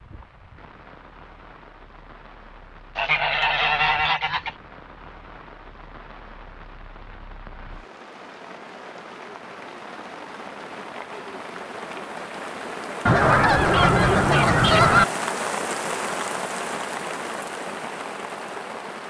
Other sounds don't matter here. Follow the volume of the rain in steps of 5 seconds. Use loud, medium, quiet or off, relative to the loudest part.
quiet, quiet, loud, loud.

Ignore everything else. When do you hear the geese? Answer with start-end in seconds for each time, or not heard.
3.0-4.5, 13.1-15.1.